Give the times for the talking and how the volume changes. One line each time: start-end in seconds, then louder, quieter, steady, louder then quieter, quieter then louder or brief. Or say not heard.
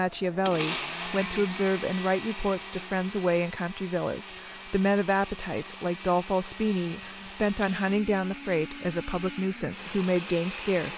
0.0-10.9 steady.